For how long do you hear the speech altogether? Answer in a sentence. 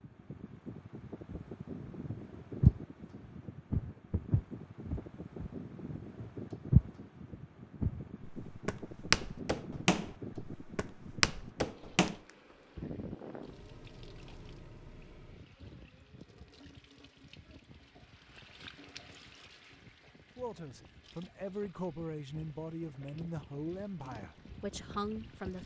You can hear the speech for 5 seconds altogether.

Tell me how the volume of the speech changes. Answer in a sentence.
The loudness of the speech stays about the same.